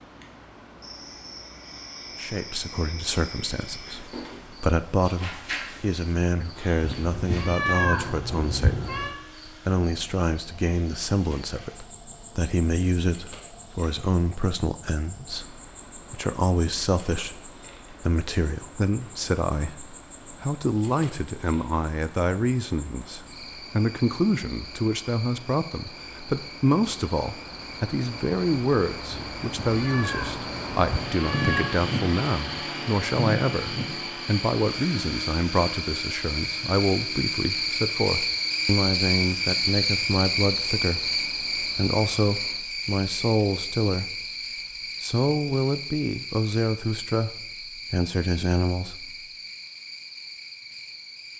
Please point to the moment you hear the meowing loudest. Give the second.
8 s.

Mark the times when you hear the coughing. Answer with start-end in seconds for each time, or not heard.
not heard.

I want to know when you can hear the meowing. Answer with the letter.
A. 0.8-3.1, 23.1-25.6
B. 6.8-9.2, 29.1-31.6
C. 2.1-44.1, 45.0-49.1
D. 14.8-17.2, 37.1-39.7
B.